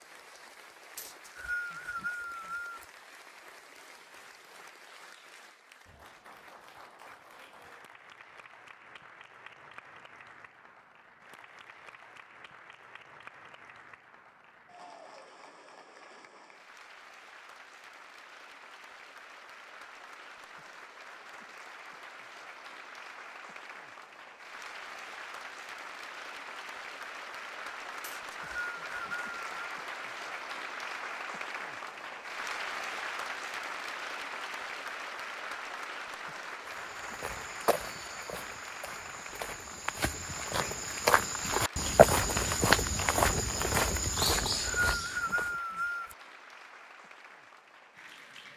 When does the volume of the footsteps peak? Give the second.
42 s.